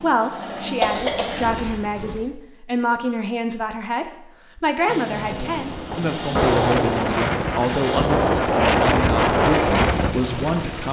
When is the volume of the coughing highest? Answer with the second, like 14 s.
1 s.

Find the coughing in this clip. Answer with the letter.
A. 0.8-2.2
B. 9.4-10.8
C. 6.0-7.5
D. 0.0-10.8
A.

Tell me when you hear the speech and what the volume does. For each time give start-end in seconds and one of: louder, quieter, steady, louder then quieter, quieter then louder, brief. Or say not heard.
0.0-10.8 steady.